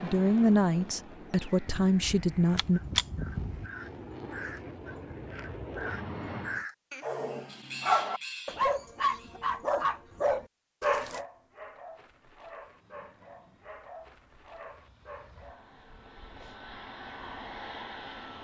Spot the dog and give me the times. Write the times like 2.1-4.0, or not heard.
7.0-15.7.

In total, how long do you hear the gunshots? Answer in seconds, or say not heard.
2 s.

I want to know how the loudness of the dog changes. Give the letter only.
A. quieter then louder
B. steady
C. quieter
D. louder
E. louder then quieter
C.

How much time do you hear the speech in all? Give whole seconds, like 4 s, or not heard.
3 s.